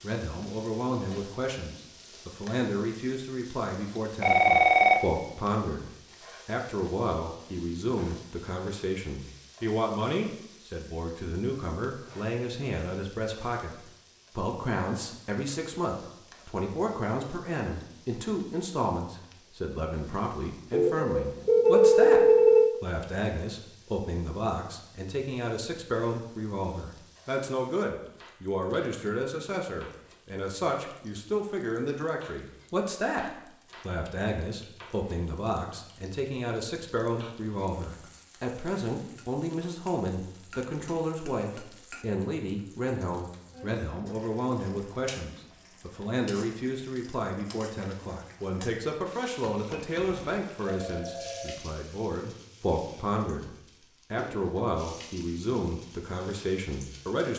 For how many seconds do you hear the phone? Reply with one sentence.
The phone can be heard for 5 seconds in total.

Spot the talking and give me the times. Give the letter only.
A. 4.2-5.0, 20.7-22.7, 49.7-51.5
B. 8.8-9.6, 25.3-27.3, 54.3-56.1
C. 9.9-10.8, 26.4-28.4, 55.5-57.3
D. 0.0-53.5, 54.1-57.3
D.